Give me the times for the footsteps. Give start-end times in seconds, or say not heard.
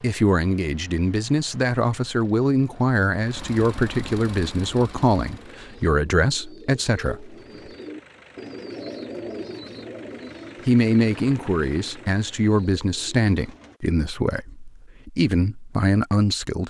not heard.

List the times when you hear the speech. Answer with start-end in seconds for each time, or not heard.
0.0-7.3, 10.7-16.6.